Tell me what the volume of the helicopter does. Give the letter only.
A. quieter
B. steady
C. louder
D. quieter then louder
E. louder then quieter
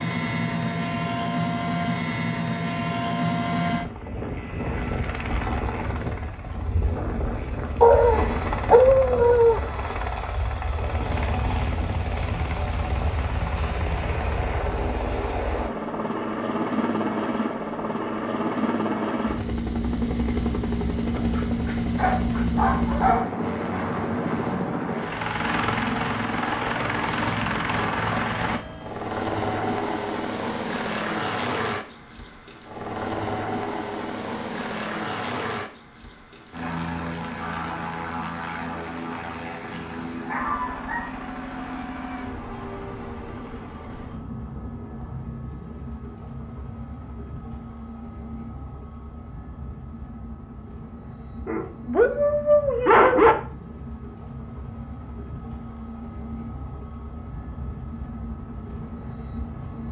A.